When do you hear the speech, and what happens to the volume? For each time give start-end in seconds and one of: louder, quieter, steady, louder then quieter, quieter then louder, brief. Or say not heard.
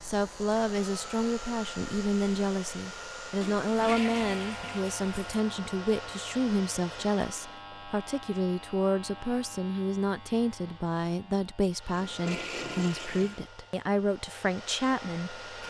0.0-15.6 steady.